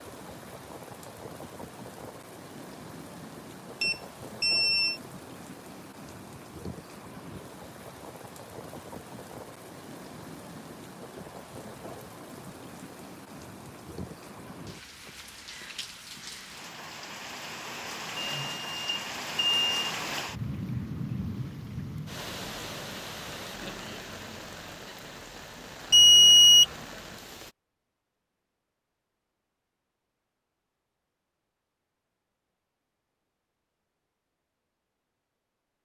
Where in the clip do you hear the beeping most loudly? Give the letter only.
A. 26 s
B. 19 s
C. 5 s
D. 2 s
A.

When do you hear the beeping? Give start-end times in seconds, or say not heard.
3.8-5.0, 18.1-19.7, 25.9-26.6.